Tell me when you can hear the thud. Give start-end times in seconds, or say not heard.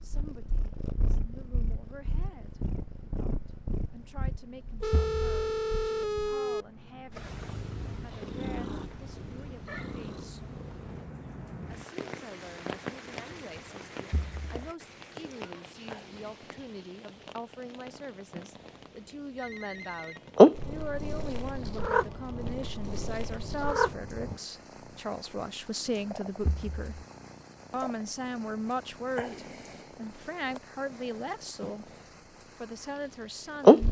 4.9-5.4, 14.1-14.6, 26.4-27.1.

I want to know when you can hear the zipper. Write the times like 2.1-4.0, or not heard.
not heard.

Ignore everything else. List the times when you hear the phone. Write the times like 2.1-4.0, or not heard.
4.8-6.7, 19.4-20.4.